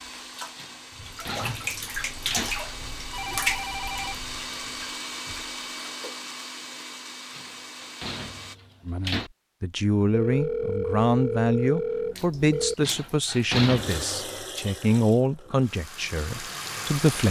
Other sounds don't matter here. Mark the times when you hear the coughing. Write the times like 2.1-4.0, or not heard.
not heard.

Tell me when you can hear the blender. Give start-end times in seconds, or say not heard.
0.0-8.6.